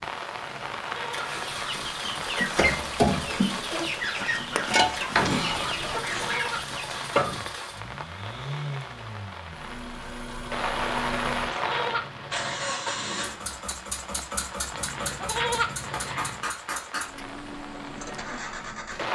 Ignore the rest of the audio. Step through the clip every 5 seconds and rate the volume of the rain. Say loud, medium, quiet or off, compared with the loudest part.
loud, medium, loud, medium.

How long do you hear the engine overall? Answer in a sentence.
The engine can be heard for 19 seconds in total.